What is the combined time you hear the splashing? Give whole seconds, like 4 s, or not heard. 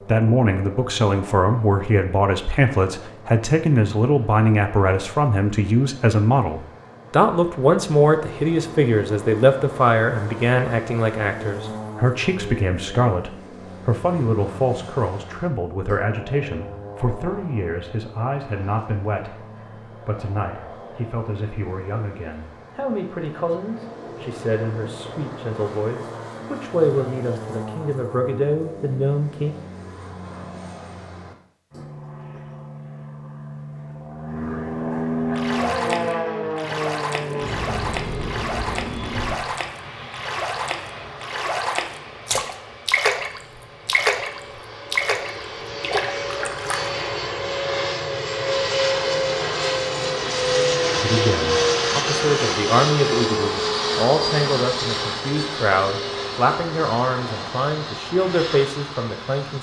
12 s.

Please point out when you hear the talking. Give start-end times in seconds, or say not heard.
0.1-29.6, 51.0-59.5.